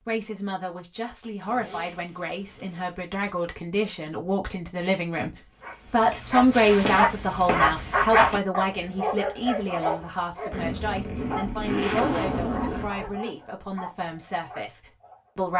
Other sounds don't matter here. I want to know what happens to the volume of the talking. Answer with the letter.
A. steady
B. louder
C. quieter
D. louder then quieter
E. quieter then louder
D.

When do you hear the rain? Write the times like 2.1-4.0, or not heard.
not heard.